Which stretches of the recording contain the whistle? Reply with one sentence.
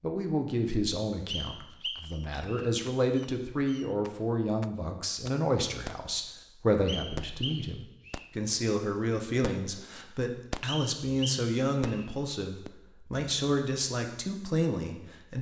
The whistle can be heard from 1.2 to 2.7 s, from 6.8 to 8.3 s and from 10.7 to 12.1 s.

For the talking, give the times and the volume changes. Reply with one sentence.
The talking can be heard from 0.0 to 15.3 s, at a steady volume.